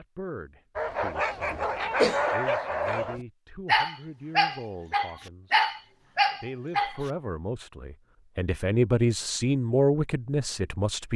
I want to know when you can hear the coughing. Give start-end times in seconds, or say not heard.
1.5-2.4.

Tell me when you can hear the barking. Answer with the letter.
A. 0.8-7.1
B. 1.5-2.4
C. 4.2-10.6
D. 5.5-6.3
A.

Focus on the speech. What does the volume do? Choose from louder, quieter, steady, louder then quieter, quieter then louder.
louder.